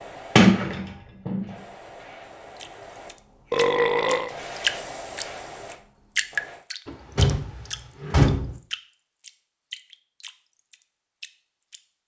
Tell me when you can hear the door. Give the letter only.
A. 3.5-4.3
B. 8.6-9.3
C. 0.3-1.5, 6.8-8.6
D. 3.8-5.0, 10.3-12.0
C.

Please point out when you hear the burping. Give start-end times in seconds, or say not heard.
3.5-4.3.